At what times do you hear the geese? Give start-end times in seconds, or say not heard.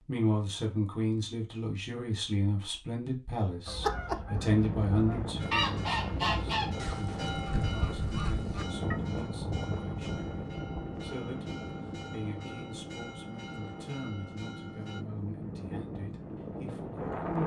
3.6-8.9.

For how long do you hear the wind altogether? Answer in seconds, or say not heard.
13 s.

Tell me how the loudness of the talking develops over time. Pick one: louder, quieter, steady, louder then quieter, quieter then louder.
quieter.